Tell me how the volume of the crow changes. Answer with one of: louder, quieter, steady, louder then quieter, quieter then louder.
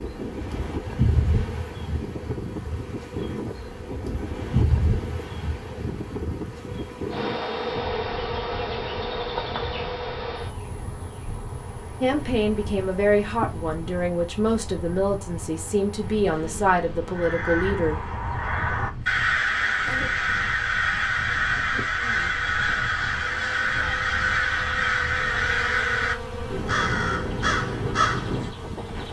steady.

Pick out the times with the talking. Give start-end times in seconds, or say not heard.
12.0-18.0.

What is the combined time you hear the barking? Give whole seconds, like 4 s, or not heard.
not heard.